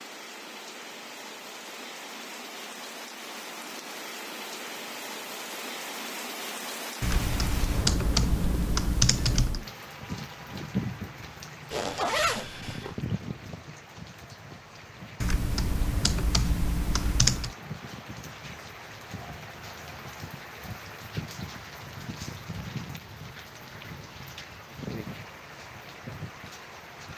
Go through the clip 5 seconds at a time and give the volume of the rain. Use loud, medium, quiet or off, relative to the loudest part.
loud, loud, loud, medium, loud, medium.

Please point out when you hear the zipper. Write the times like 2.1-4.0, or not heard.
11.7-12.9.